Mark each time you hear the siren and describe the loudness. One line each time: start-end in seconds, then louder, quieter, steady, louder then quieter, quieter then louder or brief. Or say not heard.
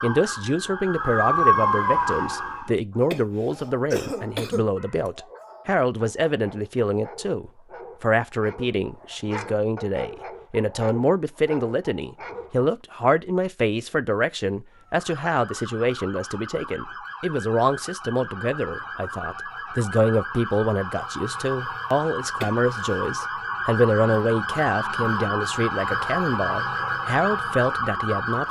0.0-2.7 brief
14.7-28.4 louder.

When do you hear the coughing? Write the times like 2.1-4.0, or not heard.
3.1-4.7, 22.4-23.2.